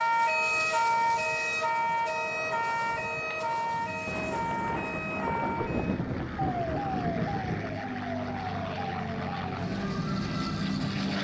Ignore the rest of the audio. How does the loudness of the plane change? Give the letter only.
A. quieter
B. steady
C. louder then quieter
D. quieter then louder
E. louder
E.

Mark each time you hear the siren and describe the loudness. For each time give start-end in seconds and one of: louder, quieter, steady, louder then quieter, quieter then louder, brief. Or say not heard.
0.0-10.8 quieter.